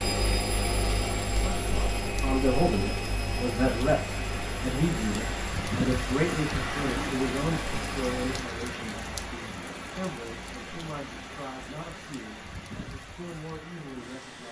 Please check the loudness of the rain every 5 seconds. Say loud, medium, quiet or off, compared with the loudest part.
medium, loud, medium.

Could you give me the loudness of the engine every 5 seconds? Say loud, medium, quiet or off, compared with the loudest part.
loud, medium, off.